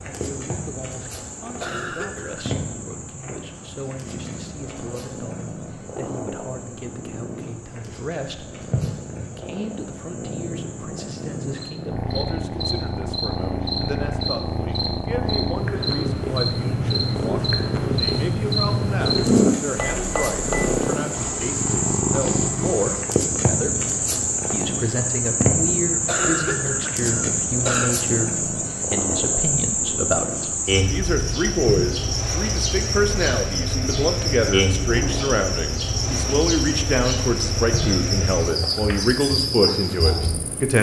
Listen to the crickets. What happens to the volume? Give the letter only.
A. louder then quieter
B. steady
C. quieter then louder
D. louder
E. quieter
D.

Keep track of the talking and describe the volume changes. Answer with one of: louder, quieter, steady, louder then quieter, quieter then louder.
louder.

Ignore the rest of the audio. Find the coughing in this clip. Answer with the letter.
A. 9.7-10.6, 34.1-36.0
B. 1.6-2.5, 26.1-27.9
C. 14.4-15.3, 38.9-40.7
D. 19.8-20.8
B.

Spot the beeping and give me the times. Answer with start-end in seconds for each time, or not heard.
19.8-20.8.